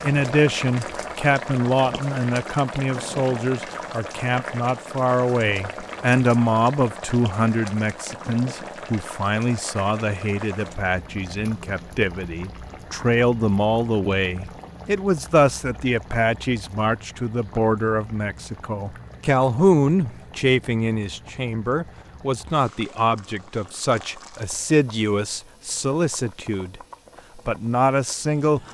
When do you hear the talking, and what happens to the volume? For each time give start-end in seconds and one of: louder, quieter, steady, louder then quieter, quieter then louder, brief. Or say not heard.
0.0-28.6 steady.